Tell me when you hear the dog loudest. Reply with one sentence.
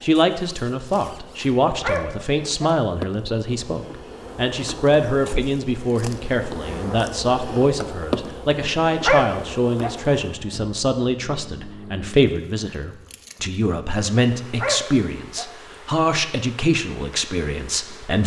The loudest moment of the dog is at 9 seconds.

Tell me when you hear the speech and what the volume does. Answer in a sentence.
The speech can be heard from 0.0 to 18.2 s, at a steady volume.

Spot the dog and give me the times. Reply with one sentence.
You can hear the dog from 1.8 to 2.7 s, from 9.0 to 9.9 s and from 14.6 to 15.4 s.